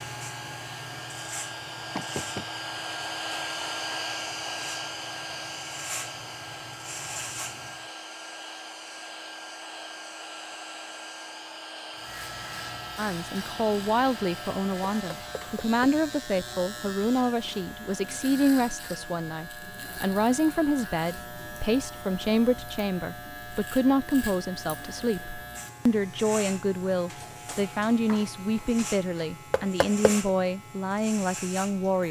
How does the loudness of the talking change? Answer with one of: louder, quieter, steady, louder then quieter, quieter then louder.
steady.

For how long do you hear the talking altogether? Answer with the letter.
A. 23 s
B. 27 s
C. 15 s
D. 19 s
D.